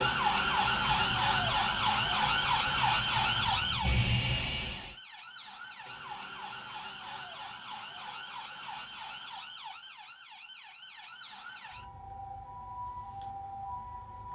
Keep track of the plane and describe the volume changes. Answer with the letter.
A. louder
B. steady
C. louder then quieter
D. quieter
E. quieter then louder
A.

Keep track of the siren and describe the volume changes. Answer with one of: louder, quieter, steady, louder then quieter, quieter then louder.
quieter.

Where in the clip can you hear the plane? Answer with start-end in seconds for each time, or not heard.
0.0-5.0.